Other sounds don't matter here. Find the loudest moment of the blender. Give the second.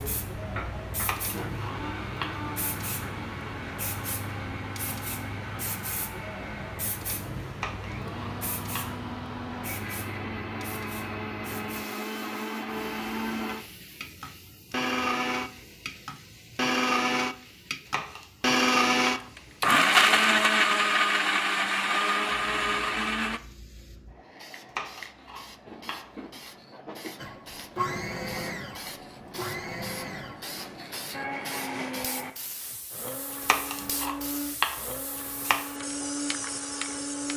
20 s.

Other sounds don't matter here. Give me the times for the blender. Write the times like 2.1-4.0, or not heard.
0.0-23.4, 27.1-37.3.